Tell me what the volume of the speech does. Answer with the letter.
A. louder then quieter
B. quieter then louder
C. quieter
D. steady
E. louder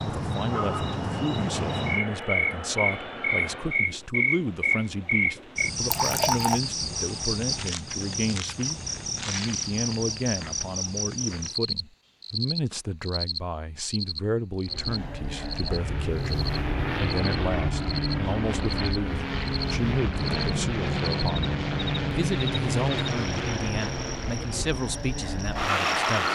D.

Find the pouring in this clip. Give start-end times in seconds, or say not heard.
5.9-6.6.